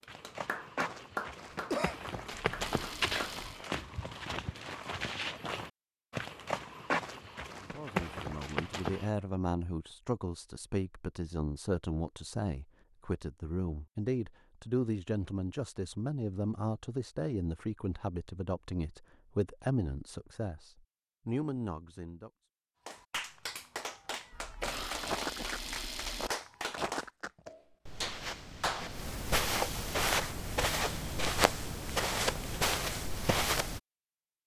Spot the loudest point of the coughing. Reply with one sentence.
The volume of the coughing peaks at 2 seconds.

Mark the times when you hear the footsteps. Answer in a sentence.
You can hear the footsteps from 0.1 to 9.1 s and from 25.0 to 33.8 s.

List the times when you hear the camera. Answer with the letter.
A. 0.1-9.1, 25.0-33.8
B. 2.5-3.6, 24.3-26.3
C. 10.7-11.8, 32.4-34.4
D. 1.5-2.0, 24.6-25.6
B.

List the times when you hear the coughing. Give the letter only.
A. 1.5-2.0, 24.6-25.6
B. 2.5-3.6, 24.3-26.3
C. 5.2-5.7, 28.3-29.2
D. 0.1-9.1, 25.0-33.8
A.